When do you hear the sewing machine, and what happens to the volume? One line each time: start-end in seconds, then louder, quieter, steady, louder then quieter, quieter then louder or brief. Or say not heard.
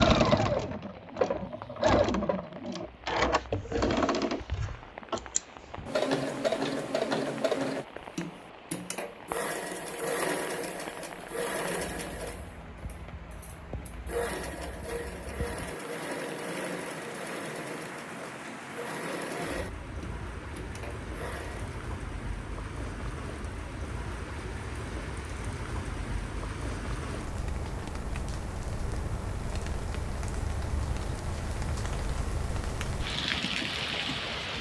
0.0-21.8 quieter.